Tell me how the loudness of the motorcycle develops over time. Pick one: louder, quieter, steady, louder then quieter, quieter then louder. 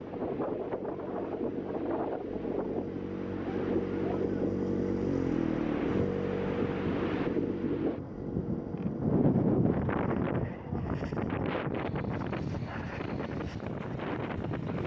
louder then quieter.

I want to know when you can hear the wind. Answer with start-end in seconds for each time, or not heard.
0.0-14.8.